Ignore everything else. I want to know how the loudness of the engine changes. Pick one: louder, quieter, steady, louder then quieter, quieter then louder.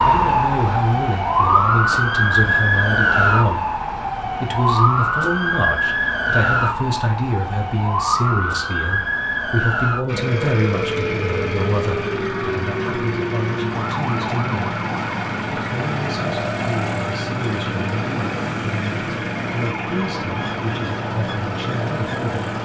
steady.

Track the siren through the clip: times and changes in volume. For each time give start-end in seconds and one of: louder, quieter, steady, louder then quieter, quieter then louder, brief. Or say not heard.
0.0-22.5 quieter.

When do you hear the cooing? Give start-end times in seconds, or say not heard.
not heard.